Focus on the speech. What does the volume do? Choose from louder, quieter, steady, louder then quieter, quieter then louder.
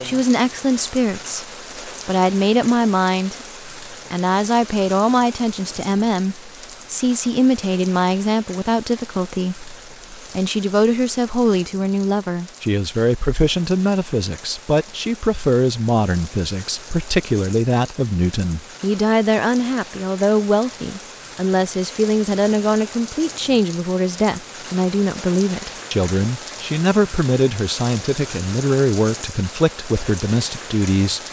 steady.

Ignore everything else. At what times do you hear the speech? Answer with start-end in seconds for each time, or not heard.
0.0-31.2.